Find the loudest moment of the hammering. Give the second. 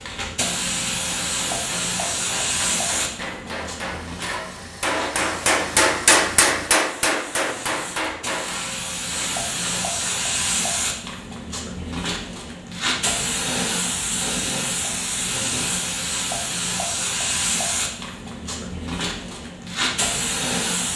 6 s.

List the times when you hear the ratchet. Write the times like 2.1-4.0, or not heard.
not heard.